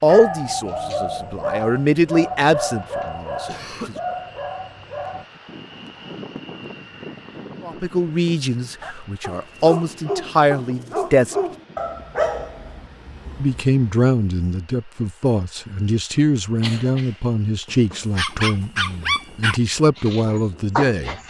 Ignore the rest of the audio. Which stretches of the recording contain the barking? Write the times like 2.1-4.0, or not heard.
0.1-5.2, 8.8-13.7, 18.0-21.2.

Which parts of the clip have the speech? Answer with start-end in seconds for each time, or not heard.
0.0-4.0, 7.6-11.3, 13.4-21.1.